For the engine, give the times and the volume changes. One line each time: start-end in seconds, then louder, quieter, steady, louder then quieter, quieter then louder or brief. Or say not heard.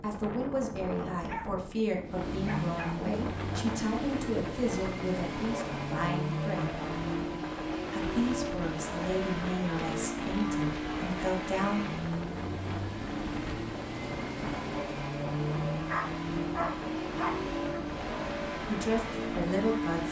2.0-20.0 steady.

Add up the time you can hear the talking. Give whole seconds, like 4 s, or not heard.
12 s.